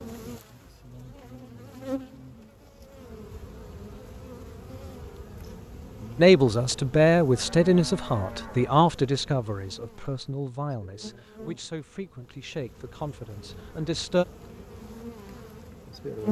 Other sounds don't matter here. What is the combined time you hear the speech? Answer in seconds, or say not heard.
8 s.